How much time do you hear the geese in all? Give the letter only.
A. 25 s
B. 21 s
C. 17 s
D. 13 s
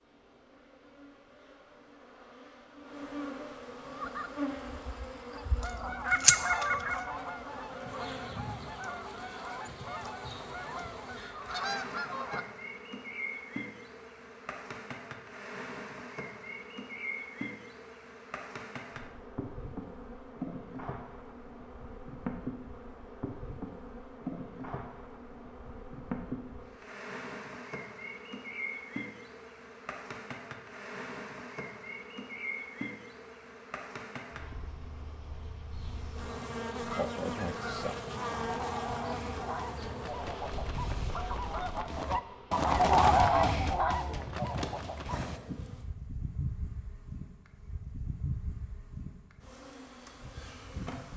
C.